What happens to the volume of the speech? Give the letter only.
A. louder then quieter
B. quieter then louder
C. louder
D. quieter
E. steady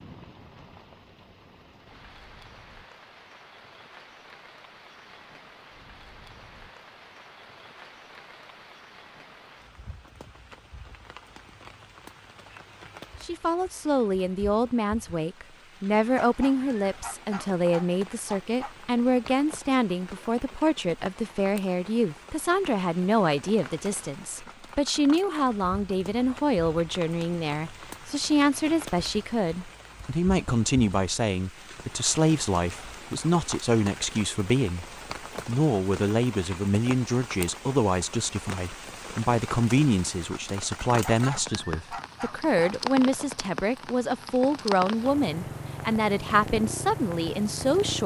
E.